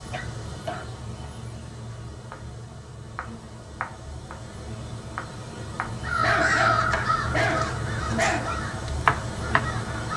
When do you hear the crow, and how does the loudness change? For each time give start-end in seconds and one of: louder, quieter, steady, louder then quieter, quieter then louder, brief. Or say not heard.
6.0-10.1 quieter.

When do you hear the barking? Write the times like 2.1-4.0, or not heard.
0.1-0.8, 6.2-8.6.